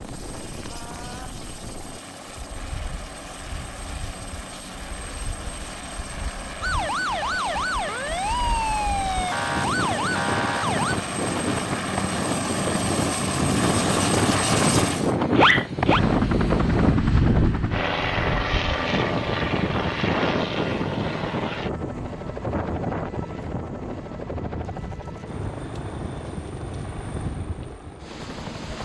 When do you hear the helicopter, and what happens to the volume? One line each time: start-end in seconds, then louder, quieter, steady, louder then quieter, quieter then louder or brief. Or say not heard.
0.0-28.8 louder then quieter.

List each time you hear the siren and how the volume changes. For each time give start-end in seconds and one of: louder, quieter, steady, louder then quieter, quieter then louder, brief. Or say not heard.
6.6-10.9 steady.